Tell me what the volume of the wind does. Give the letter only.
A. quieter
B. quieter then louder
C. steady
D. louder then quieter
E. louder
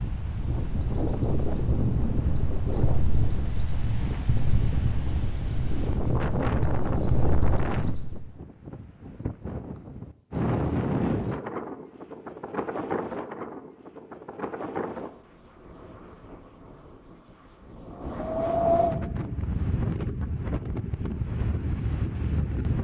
B.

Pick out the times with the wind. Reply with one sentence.
The wind can be heard from 0.0 to 22.7 s.